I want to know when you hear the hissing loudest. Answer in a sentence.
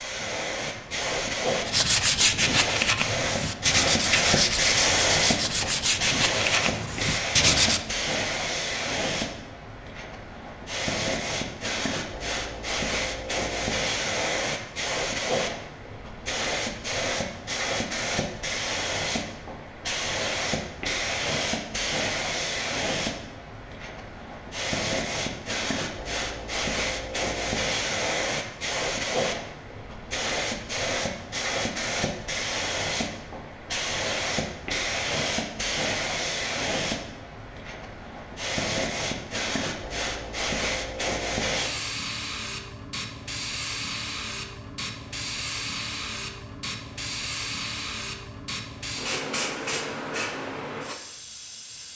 The volume of the hissing peaks at 5 seconds.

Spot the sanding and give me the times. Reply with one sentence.
The sanding can be heard from 1.6 to 7.8 s.